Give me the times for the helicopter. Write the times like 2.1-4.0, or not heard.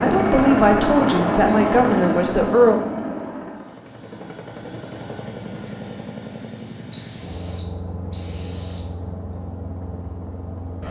0.0-10.8.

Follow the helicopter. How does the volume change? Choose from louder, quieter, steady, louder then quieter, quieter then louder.
quieter.